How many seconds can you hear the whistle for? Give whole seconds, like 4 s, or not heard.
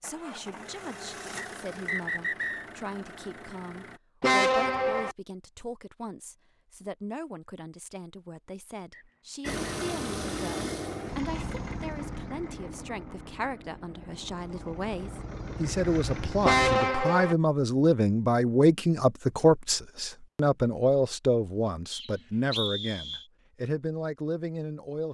3 s.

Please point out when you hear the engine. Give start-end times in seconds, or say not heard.
0.0-4.0, 9.4-16.9.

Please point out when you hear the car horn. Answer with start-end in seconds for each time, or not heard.
4.2-5.2, 16.4-17.4.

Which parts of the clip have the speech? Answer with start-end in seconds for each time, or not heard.
0.0-25.1.